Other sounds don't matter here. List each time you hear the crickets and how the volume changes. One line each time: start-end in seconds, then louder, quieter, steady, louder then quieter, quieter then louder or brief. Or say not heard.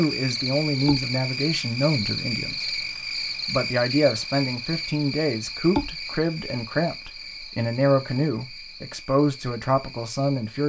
0.0-10.6 quieter.